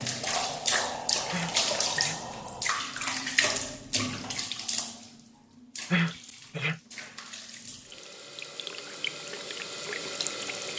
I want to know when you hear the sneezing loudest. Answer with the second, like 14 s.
6 s.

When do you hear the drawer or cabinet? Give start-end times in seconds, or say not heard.
not heard.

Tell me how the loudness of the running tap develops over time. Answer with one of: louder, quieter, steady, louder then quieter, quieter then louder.
quieter then louder.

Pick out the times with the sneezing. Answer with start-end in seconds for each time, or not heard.
1.3-2.2, 5.9-6.8.